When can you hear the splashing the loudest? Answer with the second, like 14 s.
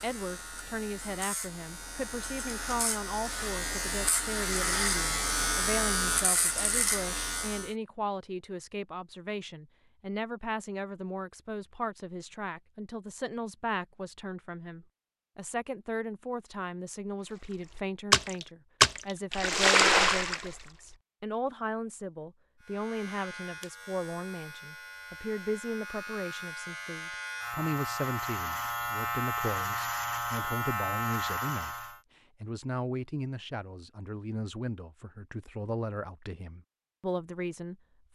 20 s.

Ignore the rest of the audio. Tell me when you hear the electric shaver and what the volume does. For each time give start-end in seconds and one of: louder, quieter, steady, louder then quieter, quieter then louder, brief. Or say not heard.
0.0-7.7 louder
22.6-32.0 louder.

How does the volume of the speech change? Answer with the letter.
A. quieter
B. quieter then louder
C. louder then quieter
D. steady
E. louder
D.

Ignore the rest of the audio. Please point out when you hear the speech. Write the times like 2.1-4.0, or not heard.
0.0-37.8.